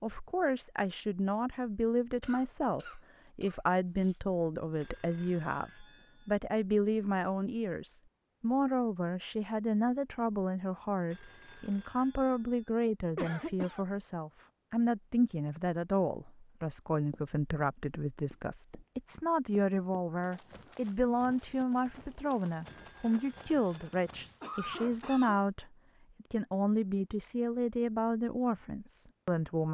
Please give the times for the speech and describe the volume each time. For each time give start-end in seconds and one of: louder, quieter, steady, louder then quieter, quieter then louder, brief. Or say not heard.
0.0-29.6 steady.